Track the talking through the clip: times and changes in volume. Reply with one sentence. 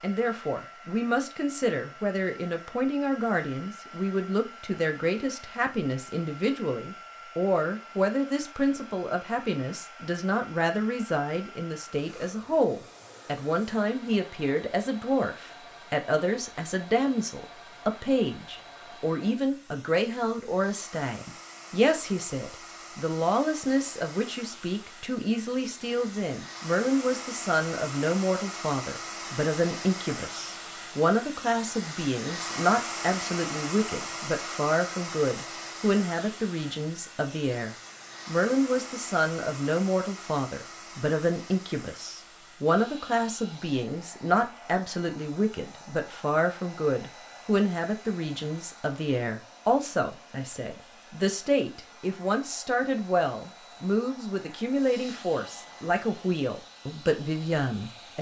The talking can be heard from 0.0 to 58.1 s, at a steady volume.